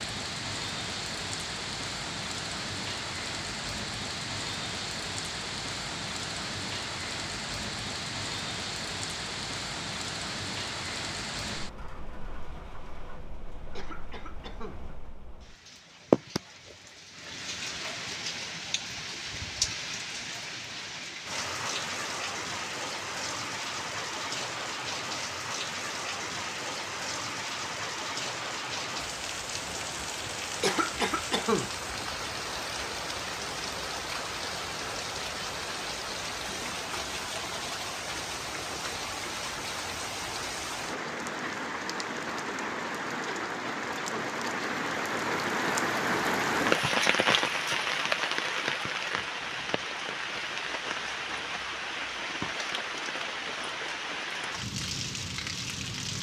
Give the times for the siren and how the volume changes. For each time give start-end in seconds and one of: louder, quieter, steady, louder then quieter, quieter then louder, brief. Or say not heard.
not heard.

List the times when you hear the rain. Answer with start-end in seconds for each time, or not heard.
0.0-56.1.